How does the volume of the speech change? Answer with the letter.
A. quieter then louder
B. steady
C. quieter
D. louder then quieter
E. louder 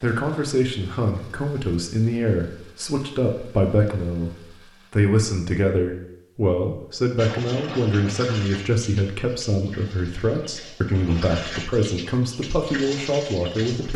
B.